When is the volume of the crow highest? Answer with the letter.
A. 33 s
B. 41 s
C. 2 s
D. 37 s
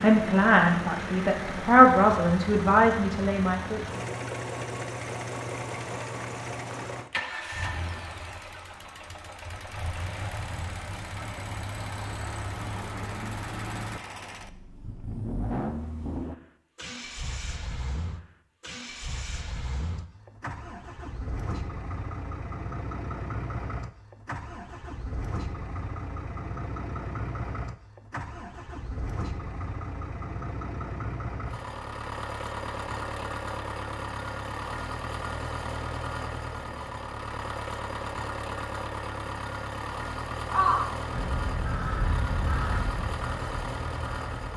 B.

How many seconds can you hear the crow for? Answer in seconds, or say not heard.
4 s.